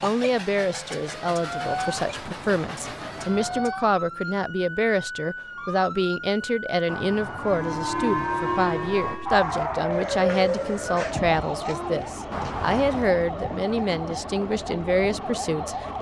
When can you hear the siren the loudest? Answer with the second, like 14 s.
10 s.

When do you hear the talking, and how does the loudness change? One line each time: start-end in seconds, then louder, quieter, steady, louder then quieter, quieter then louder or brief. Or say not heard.
0.0-15.8 steady.